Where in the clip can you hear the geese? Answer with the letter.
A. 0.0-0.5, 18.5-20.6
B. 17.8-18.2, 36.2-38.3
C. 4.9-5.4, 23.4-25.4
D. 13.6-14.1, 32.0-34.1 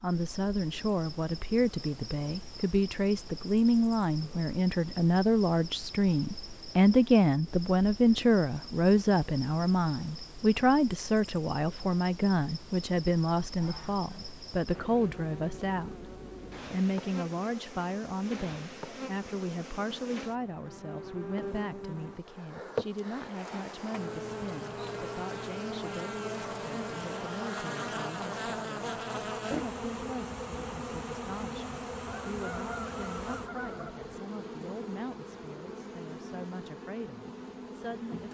D.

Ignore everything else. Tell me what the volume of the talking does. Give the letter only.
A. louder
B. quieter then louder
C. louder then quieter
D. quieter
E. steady
D.